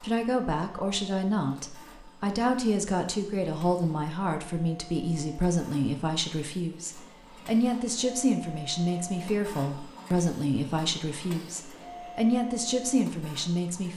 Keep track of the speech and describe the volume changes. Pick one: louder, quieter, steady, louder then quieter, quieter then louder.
steady.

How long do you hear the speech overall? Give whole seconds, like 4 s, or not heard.
14 s.